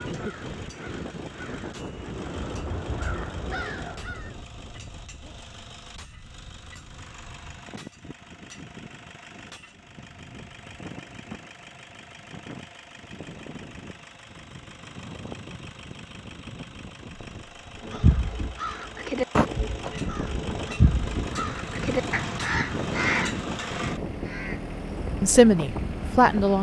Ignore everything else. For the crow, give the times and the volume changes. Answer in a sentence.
You can hear the crow from 0.1 to 4.3 s, getting louder; and from 17.8 to 24.6 s, at a steady volume.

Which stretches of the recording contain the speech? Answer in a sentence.
You can hear the speech from 25.2 to 26.5 s.